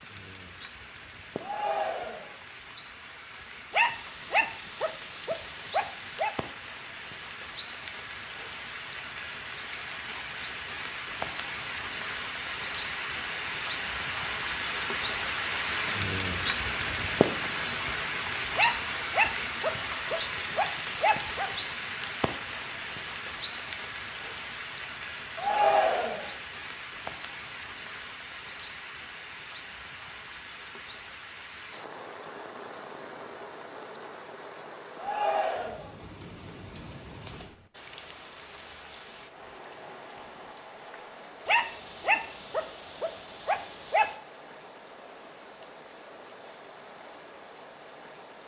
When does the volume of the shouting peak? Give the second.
26 s.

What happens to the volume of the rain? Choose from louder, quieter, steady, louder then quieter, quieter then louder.
louder then quieter.